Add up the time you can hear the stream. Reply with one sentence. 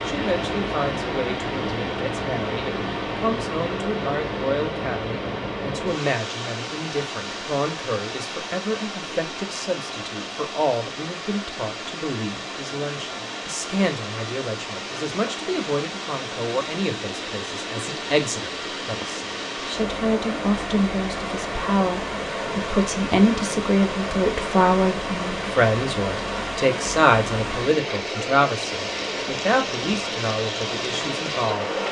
The stream can be heard for 32 seconds in total.